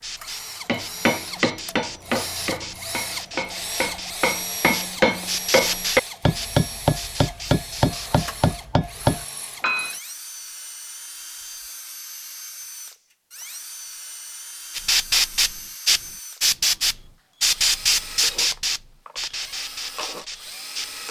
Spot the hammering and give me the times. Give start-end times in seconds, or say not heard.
0.7-9.9.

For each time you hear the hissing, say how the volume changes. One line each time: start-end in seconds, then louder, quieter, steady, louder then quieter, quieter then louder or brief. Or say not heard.
0.0-8.4 louder then quieter
14.8-20.9 quieter.